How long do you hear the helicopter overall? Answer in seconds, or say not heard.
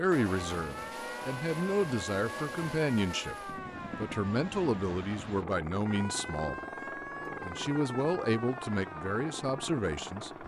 10 s.